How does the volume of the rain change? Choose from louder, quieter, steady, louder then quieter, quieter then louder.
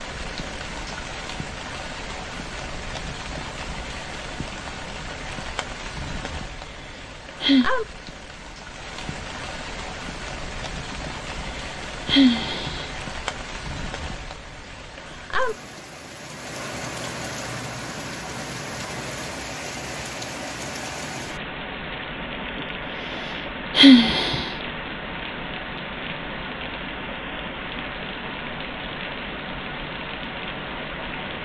steady.